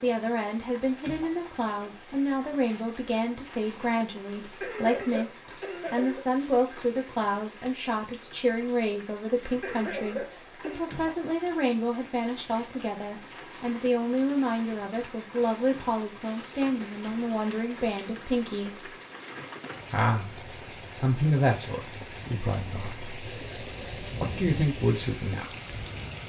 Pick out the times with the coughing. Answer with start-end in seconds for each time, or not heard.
4.6-6.2, 9.6-10.9, 23.3-23.8.